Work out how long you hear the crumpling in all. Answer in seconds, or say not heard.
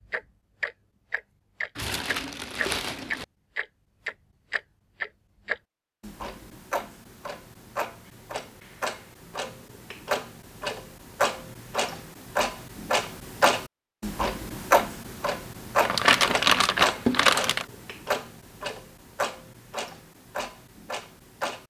3 s.